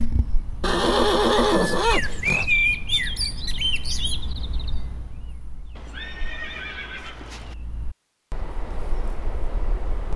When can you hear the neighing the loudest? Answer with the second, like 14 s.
1 s.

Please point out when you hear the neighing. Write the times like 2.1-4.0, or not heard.
0.6-2.5, 5.8-7.5.